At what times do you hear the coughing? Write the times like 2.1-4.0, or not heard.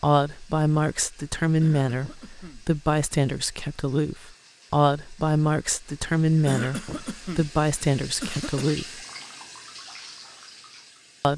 1.6-2.6, 6.5-7.5, 8.2-8.7.